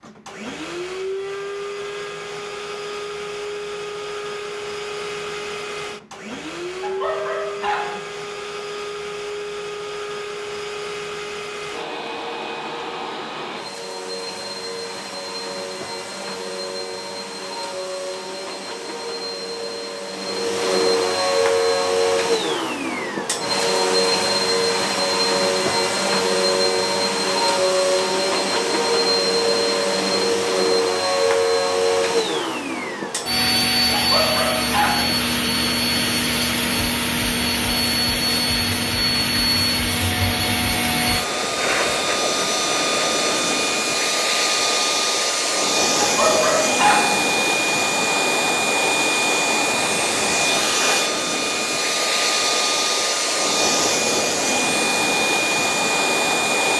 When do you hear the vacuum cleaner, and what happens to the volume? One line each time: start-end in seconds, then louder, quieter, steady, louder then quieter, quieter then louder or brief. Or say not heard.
0.0-56.7 louder.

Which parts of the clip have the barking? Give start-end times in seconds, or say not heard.
6.8-8.0, 33.9-35.1, 46.0-47.1.